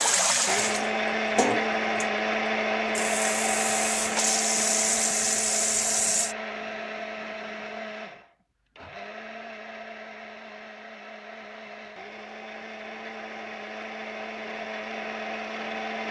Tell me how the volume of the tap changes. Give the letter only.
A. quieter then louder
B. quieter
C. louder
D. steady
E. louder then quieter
A.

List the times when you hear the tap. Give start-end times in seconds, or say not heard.
0.0-6.3.